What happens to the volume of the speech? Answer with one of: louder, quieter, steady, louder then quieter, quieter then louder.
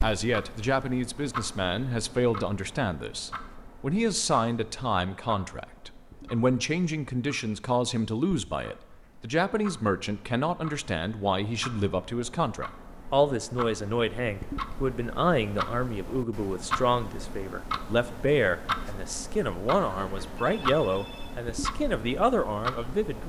steady.